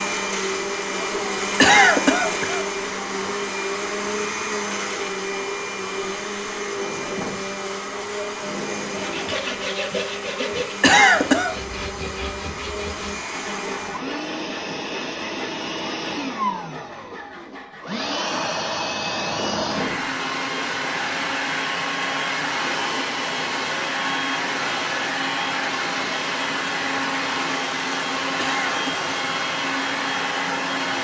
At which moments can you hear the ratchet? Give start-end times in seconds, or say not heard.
not heard.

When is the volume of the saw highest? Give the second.
10 s.